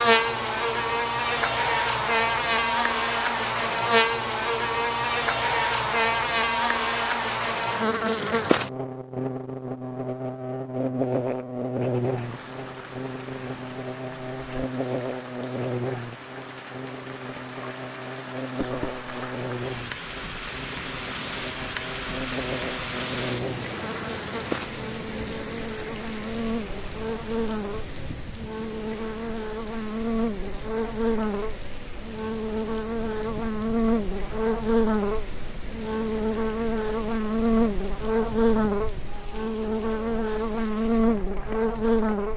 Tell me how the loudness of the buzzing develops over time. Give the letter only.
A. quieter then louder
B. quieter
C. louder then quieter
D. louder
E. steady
A.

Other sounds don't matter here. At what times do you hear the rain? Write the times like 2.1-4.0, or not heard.
11.8-42.3.